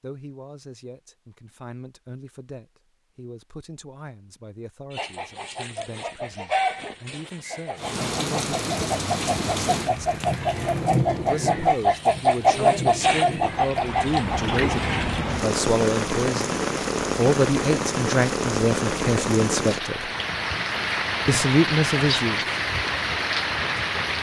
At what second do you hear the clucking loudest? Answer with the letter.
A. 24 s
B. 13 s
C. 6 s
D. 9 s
B.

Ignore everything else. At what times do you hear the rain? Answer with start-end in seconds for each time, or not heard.
7.8-24.1.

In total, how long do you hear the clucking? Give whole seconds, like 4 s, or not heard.
10 s.